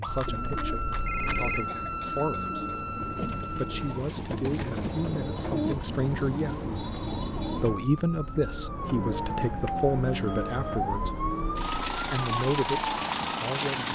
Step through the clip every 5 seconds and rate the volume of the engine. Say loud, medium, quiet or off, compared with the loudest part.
medium, medium, loud.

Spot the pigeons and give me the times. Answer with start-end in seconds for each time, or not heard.
0.2-7.8.